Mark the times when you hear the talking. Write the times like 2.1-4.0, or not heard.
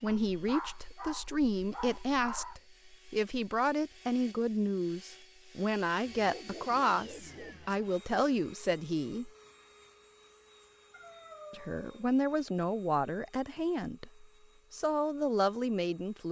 0.0-9.3, 11.5-16.2.